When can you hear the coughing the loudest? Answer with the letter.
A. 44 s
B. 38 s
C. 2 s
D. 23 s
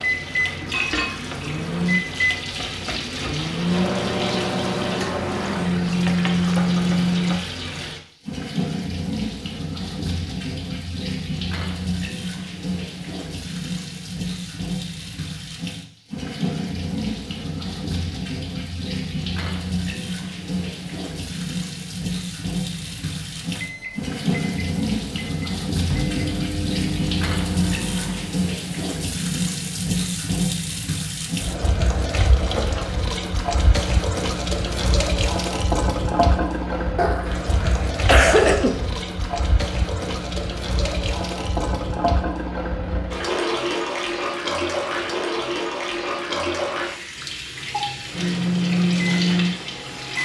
B.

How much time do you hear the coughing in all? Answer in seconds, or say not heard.
2 s.